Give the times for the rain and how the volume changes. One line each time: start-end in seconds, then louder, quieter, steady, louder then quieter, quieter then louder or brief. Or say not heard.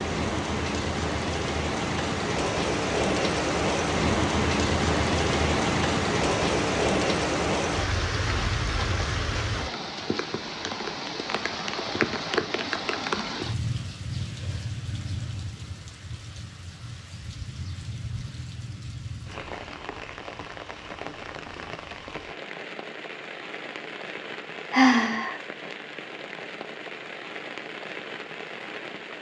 0.0-29.1 quieter.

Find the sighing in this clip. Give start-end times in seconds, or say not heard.
24.7-25.4.